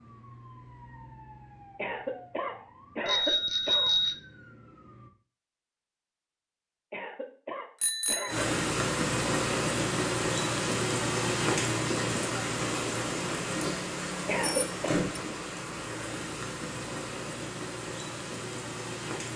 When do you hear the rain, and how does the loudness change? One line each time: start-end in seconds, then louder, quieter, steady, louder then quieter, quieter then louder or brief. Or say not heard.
8.2-19.3 quieter.